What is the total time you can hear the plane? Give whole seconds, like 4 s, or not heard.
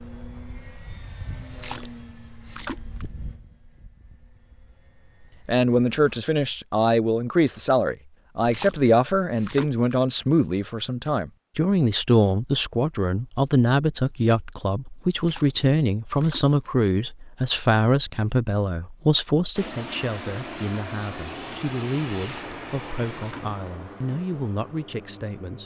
12 s.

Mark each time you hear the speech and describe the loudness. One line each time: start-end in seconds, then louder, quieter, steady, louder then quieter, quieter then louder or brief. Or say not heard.
5.5-25.6 quieter.